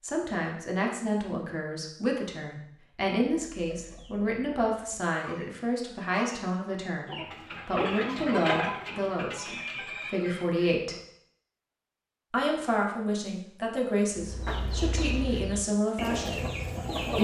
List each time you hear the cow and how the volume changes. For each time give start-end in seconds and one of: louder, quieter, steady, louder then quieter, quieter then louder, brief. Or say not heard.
not heard.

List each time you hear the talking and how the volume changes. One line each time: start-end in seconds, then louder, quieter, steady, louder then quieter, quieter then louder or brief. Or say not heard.
0.0-10.9 steady
12.3-16.4 steady.